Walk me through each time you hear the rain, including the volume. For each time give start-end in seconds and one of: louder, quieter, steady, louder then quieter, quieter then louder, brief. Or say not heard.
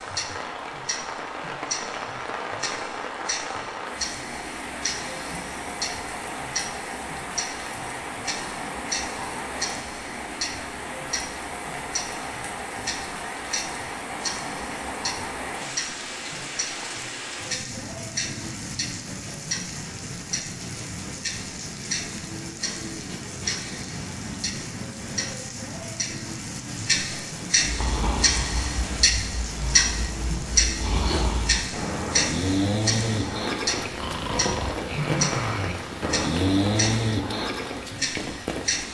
0.0-38.8 steady.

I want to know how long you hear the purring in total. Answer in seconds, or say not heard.
not heard.